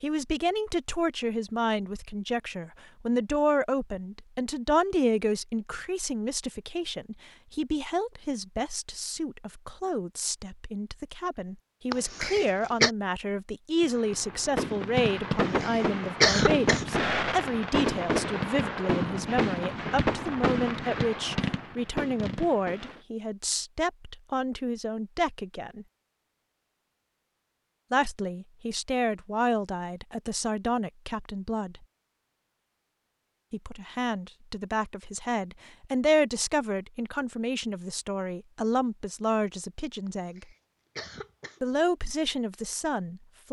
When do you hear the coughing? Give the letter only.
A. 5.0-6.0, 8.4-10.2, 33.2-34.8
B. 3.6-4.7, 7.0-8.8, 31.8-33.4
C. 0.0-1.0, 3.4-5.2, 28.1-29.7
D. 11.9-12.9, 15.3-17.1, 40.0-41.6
D.